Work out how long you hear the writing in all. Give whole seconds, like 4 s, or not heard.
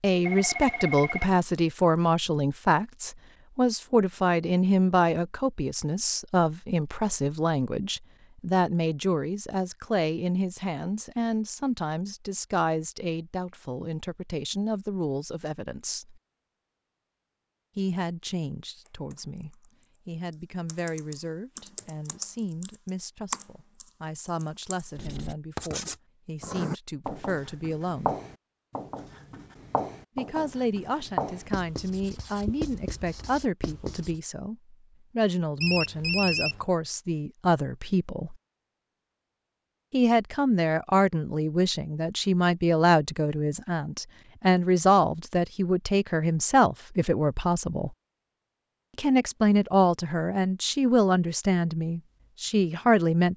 9 s.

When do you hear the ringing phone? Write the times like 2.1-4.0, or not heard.
0.2-1.4, 35.6-36.6.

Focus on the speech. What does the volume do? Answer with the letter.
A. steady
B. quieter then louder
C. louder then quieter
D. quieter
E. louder
B.